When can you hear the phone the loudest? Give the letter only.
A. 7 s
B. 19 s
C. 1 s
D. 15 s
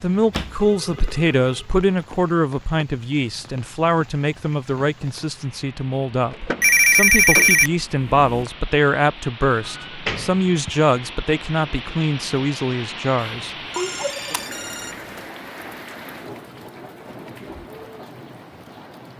A.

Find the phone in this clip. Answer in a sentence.
You can hear the phone from 0.3 to 1.3 s, from 6.6 to 8.4 s and from 13.2 to 15.2 s.